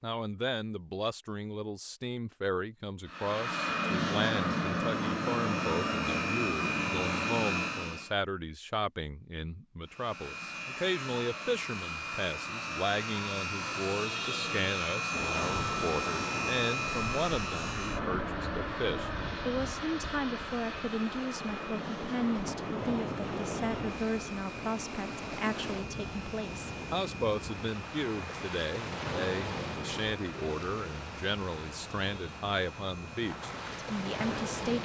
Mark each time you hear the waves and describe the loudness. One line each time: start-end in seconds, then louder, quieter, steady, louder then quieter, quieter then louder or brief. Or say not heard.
15.1-34.8 steady.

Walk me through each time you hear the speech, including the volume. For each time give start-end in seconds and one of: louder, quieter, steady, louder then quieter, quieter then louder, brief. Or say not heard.
0.0-34.8 steady.